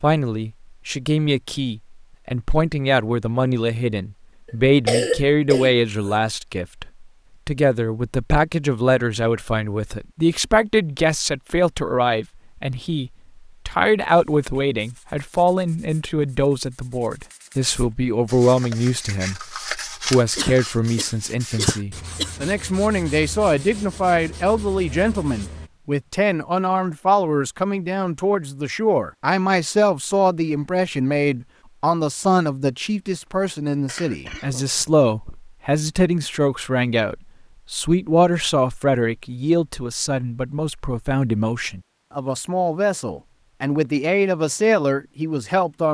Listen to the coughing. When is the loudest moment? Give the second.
5 s.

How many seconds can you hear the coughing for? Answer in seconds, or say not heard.
5 s.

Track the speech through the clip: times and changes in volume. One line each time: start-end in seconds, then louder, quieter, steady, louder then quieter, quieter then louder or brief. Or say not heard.
0.0-45.9 steady.